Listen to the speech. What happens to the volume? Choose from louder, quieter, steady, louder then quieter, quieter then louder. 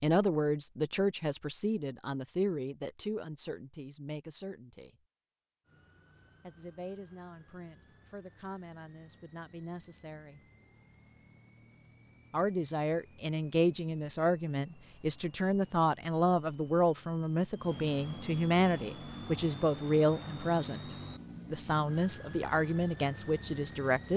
quieter then louder.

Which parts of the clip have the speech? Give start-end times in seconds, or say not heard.
0.0-4.9, 6.4-10.4, 12.3-24.1.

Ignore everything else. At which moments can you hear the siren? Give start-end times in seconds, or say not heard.
not heard.